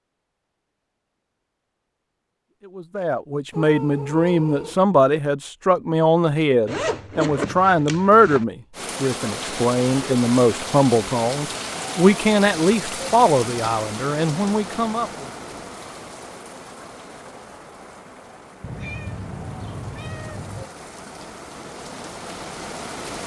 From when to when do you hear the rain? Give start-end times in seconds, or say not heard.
8.7-23.2.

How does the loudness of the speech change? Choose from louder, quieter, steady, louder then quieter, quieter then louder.
steady.